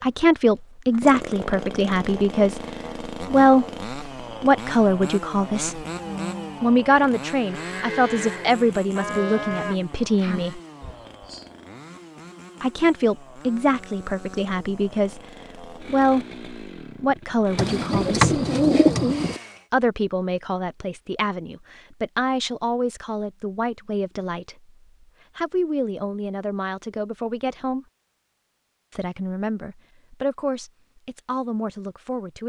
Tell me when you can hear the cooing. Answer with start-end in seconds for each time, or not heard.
17.6-19.4.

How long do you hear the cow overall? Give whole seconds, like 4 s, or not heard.
6 s.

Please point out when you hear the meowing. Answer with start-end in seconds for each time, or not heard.
not heard.